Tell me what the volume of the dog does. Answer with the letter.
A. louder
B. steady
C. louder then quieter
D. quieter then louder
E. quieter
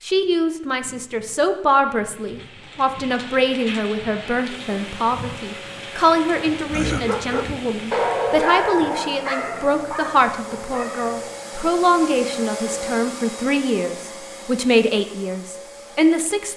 C.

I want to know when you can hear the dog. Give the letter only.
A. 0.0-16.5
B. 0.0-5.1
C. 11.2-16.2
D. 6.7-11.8
D.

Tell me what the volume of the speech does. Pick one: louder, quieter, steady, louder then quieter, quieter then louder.
steady.